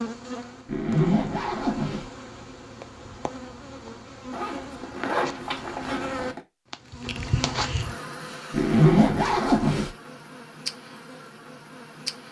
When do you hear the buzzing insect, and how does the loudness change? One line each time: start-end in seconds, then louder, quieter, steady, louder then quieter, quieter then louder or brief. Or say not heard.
0.0-12.2 louder then quieter.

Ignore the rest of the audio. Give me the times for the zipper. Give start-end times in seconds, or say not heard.
0.7-2.0, 4.3-6.4, 8.5-9.9.